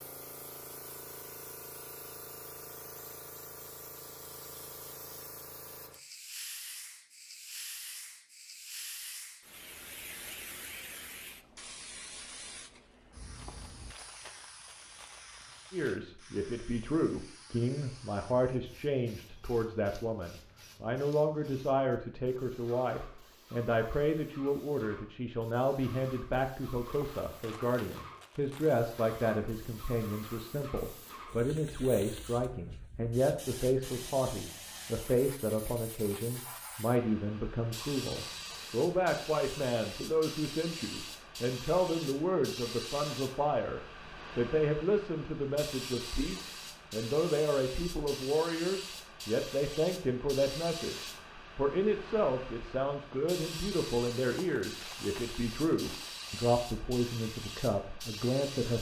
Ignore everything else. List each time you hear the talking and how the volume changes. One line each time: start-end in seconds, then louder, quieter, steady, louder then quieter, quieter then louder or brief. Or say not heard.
15.7-58.7 steady.